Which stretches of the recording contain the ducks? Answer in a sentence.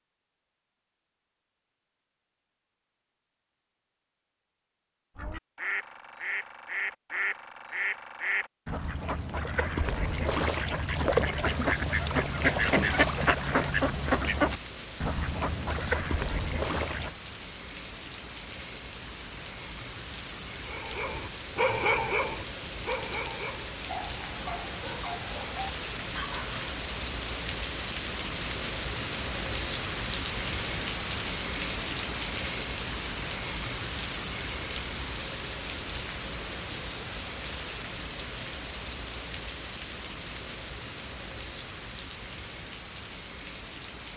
You can hear the ducks from 5.2 to 17.1 s.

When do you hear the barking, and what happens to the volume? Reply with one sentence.
You can hear the barking from 20.6 to 26.6 s, getting quieter.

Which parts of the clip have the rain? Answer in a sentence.
You can hear the rain from 11.4 to 44.1 s.